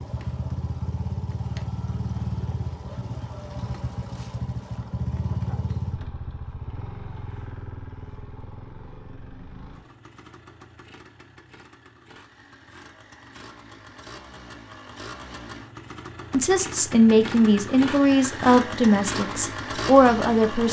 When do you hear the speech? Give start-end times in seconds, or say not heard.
16.3-20.6.